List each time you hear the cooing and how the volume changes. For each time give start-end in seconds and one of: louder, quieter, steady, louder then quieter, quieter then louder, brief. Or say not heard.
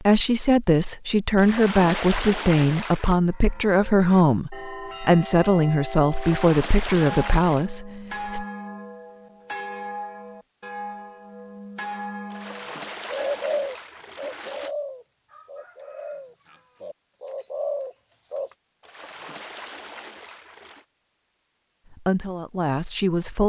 13.1-18.5 quieter then louder.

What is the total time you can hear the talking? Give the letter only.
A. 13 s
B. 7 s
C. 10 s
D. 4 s
C.